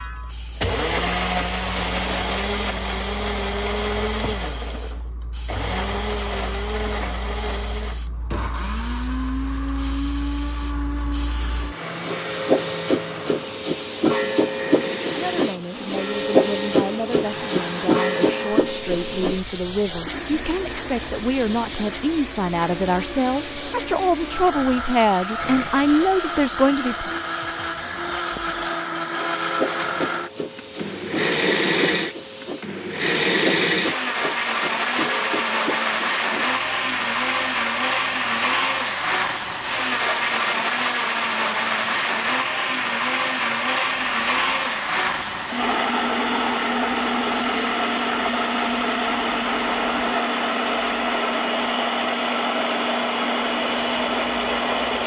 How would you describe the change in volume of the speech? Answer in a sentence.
The volume of the speech goes up.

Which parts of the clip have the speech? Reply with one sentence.
The speech can be heard from 15.2 to 27.2 s.